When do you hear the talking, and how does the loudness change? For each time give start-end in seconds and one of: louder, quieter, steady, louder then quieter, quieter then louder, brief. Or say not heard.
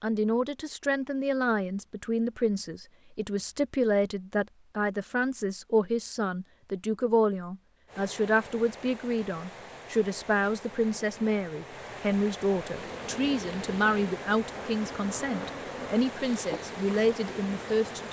0.0-18.0 steady.